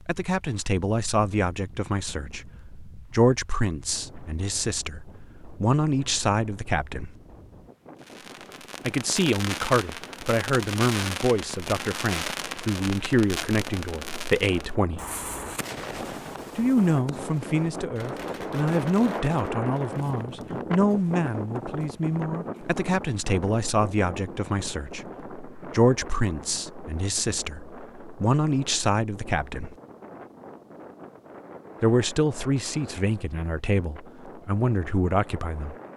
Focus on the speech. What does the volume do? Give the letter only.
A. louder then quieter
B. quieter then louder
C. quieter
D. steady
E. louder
D.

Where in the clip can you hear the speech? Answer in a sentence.
You can hear the speech from 0.1 to 7.2 s, from 8.8 to 15.0 s, from 16.6 to 29.8 s and from 31.8 to 35.8 s.